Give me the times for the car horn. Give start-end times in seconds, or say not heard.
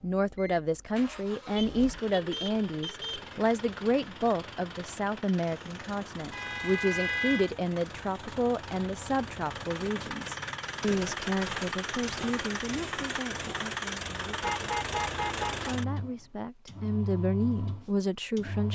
1.6-3.3, 6.3-7.5, 14.4-15.7.